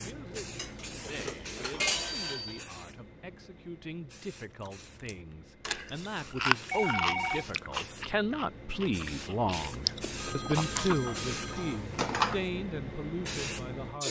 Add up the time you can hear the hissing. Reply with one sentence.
You can hear the hissing for 14 seconds altogether.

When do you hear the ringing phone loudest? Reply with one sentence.
The volume of the ringing phone peaks at 7 seconds.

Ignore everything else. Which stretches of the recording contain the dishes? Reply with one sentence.
You can hear the dishes from 0.6 to 2.2 s and from 10.8 to 12.4 s.